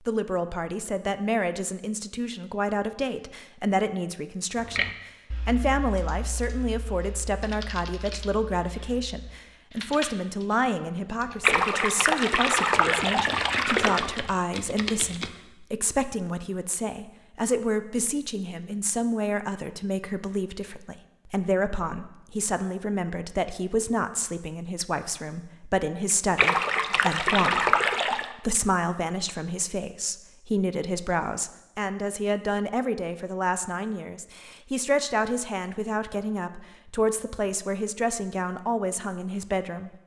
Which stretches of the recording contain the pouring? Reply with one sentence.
You can hear the pouring from 11.4 to 14.1 s and from 26.4 to 28.3 s.